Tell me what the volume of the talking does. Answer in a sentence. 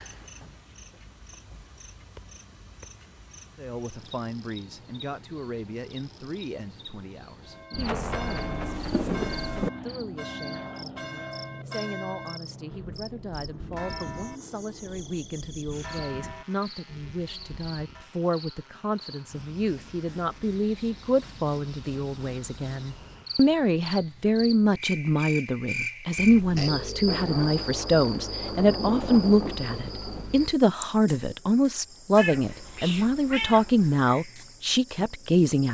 The loudness of the talking goes up.